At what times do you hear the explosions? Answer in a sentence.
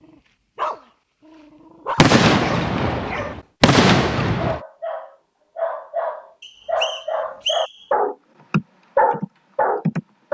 You can hear the explosions from 1.9 to 4.6 s.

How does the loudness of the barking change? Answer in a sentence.
The volume of the barking goes up.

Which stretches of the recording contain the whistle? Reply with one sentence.
You can hear the whistle from 6.4 to 7.8 s.